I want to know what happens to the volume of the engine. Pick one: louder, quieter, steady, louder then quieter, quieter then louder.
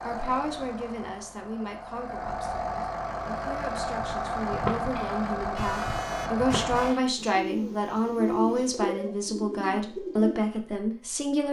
louder.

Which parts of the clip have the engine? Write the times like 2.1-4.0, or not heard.
0.0-7.0.